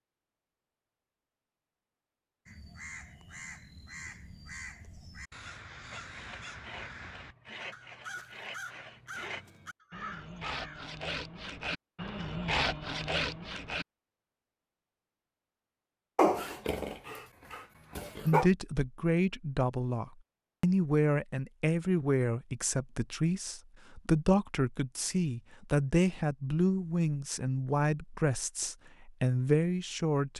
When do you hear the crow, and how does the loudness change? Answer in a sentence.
The crow can be heard from 2.5 to 10.9 s, at a steady volume.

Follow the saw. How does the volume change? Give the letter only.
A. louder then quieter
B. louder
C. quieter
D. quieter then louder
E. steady
B.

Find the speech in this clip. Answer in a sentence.
You can hear the speech from 18.2 to 30.3 s.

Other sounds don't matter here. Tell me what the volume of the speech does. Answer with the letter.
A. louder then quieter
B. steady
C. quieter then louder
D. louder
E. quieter
B.